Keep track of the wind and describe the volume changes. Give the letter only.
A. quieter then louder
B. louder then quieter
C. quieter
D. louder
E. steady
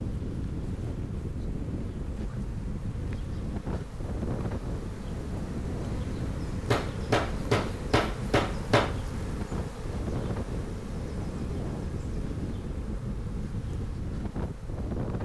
E.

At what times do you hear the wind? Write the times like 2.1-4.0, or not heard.
0.0-15.1.